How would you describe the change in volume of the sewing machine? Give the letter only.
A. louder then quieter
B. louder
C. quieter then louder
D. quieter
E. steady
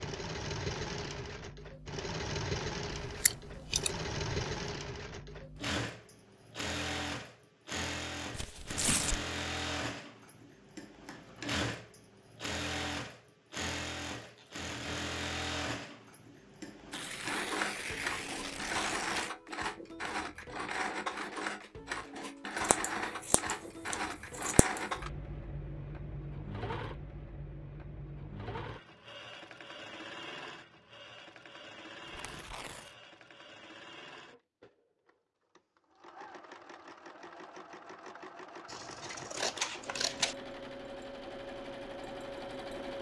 D.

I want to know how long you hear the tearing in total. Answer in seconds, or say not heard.
4 s.